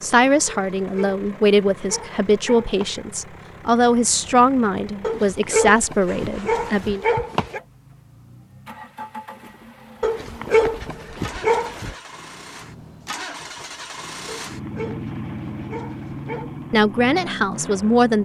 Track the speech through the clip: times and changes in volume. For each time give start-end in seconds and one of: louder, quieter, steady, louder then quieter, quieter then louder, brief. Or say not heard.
0.0-7.0 steady
16.7-18.2 brief.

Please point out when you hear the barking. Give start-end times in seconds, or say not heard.
0.5-3.0, 5.0-7.6, 10.0-11.9, 14.2-16.6.